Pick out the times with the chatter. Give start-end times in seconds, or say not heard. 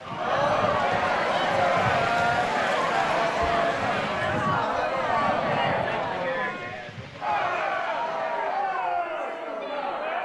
0.0-10.2.